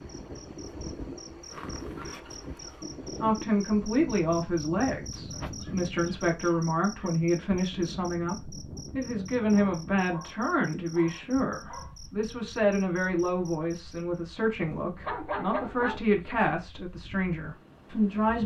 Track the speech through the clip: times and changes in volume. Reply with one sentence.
The speech can be heard from 3.2 to 18.4 s, at a steady volume.